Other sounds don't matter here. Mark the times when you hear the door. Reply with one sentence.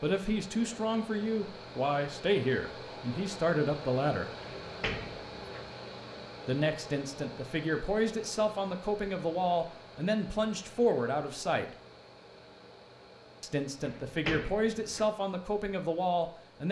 The door can be heard from 4.4 to 5.7 s and from 13.8 to 15.1 s.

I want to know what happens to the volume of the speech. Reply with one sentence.
The loudness of the speech stays about the same.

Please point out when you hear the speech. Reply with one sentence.
You can hear the speech from 0.0 to 4.3 s, from 6.5 to 11.8 s and from 13.4 to 16.6 s.